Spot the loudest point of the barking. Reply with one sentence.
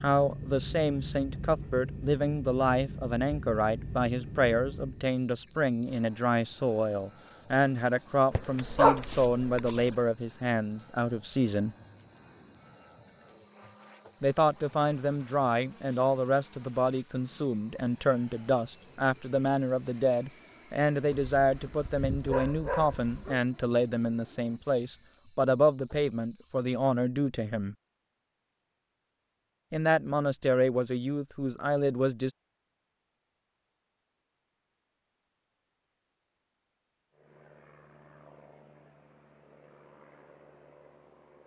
The volume of the barking peaks at 9 seconds.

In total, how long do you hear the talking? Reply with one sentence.
You can hear the talking for 28 seconds altogether.